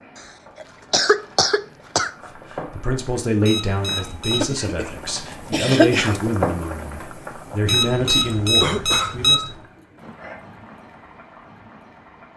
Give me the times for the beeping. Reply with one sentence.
You can hear the beeping from 3.5 to 4.5 s and from 7.7 to 9.3 s.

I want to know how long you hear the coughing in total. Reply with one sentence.
The coughing can be heard for 3 seconds in total.